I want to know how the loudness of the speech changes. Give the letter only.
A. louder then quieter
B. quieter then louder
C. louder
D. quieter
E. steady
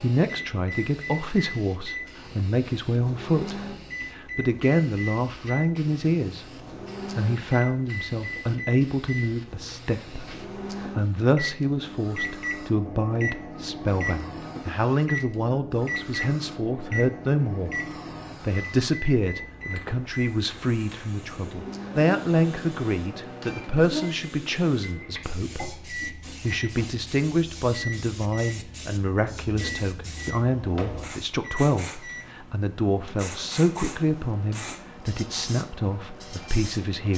E.